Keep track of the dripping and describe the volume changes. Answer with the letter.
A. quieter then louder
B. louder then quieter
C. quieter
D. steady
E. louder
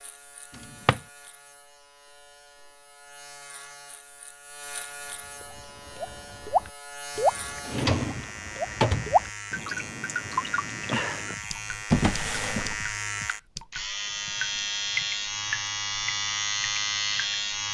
C.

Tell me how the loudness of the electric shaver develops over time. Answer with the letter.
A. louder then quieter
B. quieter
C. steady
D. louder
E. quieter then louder
D.